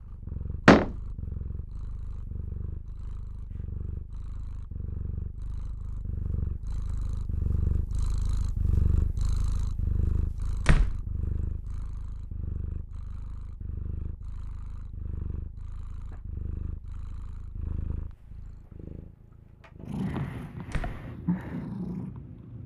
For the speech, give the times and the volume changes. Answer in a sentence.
You can't hear the speech here.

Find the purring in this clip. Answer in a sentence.
You can hear the purring from 0.0 to 22.6 s.